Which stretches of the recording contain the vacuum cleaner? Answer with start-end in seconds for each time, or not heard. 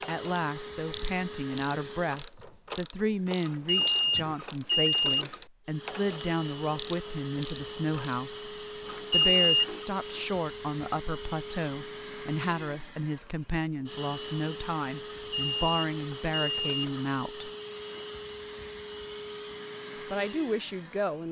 0.0-2.2, 5.7-21.2.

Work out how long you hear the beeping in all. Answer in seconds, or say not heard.
5 s.